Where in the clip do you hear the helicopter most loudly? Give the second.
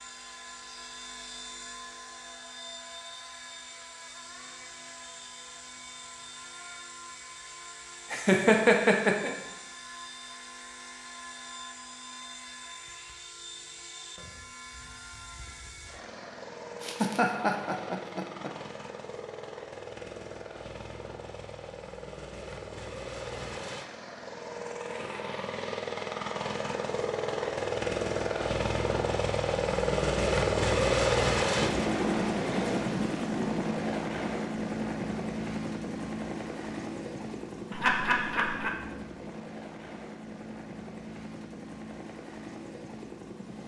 31 s.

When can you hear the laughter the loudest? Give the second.
9 s.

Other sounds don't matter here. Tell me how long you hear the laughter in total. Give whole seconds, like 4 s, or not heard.
4 s.